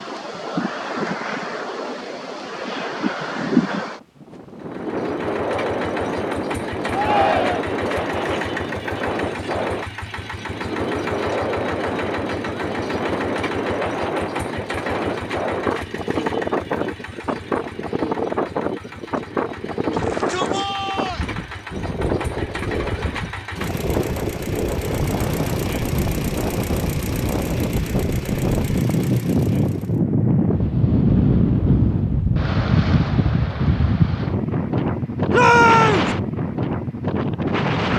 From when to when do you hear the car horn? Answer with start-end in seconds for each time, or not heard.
not heard.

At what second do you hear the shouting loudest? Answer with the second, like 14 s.
36 s.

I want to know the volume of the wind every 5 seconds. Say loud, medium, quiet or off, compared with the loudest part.
medium, medium, medium, medium, medium, loud, loud, loud.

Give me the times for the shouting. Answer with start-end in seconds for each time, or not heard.
6.9-7.8, 19.9-21.2, 35.3-36.1.